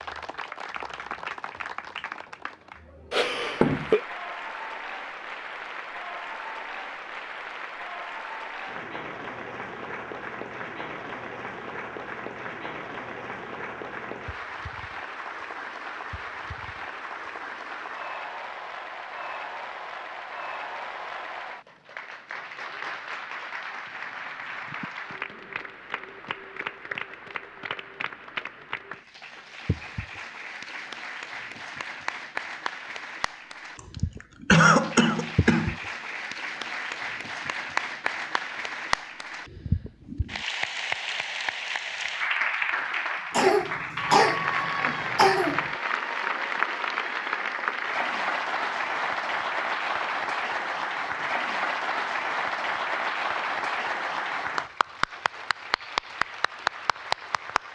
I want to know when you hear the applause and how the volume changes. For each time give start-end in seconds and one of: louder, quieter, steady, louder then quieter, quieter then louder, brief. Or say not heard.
0.0-57.7 louder.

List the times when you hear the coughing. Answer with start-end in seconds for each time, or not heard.
3.1-4.0, 34.5-35.8, 43.3-45.7.